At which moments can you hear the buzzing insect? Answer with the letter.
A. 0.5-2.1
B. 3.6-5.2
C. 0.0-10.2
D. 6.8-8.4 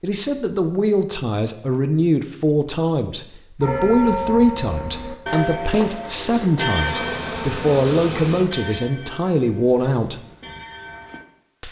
D.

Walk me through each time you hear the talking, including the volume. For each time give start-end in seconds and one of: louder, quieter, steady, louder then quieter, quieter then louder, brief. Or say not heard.
0.0-10.2 steady.